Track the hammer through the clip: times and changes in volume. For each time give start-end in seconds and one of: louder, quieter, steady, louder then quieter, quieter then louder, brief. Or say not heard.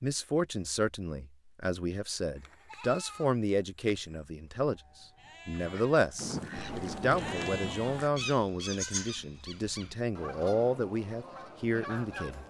not heard.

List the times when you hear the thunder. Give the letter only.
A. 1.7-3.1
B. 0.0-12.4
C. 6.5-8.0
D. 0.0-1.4
C.